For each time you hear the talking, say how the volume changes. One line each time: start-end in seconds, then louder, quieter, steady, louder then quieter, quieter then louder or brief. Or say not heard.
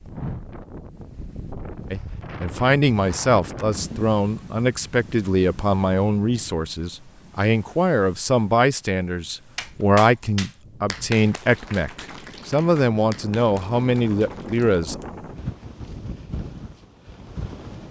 1.9-15.0 steady.